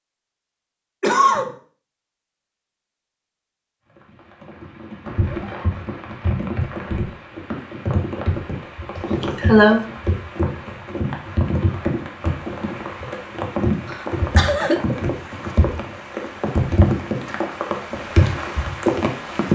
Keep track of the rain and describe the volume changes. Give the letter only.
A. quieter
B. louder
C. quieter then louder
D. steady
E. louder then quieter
B.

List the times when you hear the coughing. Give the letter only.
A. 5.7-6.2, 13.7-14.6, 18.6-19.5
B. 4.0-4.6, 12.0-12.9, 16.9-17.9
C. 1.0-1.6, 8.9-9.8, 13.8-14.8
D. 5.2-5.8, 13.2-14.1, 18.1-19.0
C.